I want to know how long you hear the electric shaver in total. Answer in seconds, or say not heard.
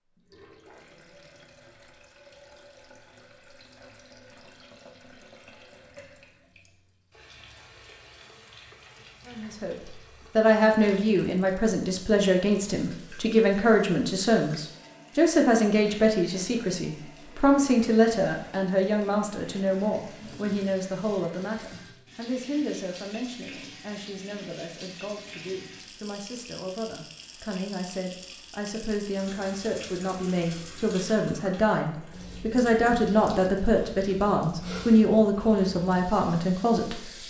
not heard.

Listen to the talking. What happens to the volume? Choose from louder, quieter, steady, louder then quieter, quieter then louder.
quieter then louder.